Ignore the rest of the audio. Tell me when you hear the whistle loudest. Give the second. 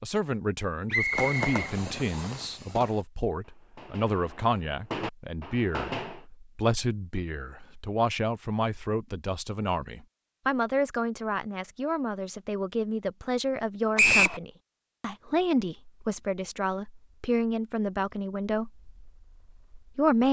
14 s.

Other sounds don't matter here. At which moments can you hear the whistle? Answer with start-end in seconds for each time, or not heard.
0.9-2.4, 13.9-14.4.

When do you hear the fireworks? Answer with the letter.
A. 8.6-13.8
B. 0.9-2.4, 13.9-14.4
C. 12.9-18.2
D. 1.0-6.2
D.